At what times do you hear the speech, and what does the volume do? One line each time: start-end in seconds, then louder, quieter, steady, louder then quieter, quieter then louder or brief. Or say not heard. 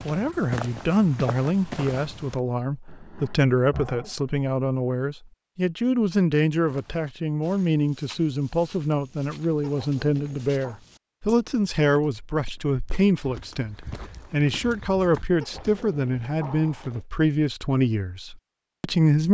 0.0-19.2 steady.